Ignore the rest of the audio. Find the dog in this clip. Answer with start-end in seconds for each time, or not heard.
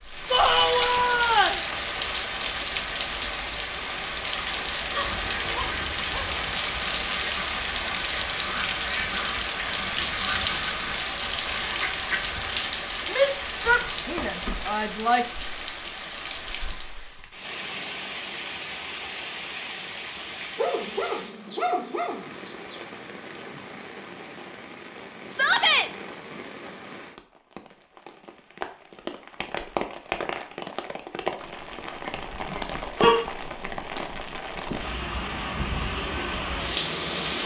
4.9-6.5, 20.3-22.8, 32.0-33.2.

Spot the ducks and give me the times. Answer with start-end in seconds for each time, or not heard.
4.9-12.7.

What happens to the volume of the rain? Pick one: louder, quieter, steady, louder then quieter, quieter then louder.
quieter then louder.